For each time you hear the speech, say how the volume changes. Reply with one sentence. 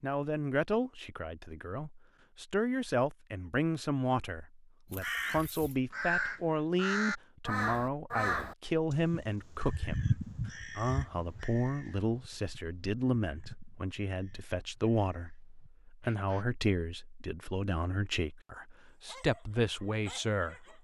The speech can be heard from 0.0 to 20.7 s, at a steady volume.